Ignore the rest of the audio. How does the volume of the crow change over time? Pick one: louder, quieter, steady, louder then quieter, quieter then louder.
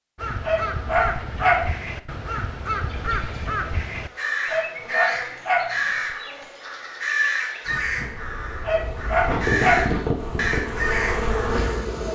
steady.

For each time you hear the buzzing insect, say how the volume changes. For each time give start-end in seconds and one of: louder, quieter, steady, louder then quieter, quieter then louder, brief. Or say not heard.
2.9-12.1 louder.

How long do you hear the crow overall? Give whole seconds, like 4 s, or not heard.
12 s.